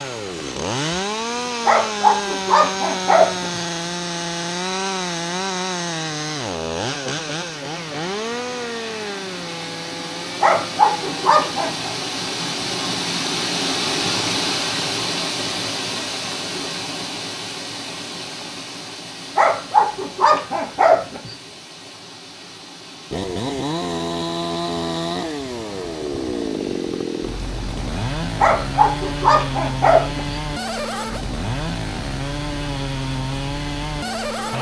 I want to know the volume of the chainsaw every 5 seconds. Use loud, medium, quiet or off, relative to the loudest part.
loud, loud, medium, off, loud, loud, loud.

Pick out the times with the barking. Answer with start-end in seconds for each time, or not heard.
1.6-3.6, 10.4-11.9, 19.4-21.4, 28.4-30.4.